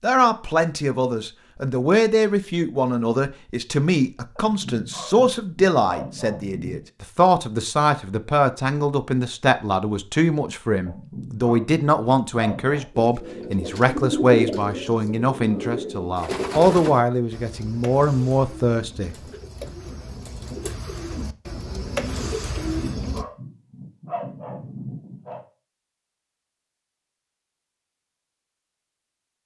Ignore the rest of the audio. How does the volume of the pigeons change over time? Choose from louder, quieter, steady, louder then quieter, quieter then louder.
quieter then louder.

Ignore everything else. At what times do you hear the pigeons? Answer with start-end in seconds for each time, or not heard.
13.0-23.2.